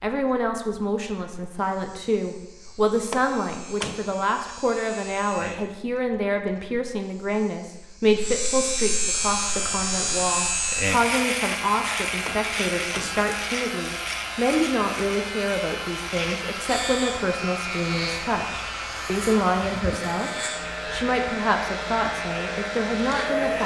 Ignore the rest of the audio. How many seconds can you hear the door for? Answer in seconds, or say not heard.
2 s.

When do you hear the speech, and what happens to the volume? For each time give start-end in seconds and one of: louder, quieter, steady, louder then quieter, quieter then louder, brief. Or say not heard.
0.0-23.6 steady.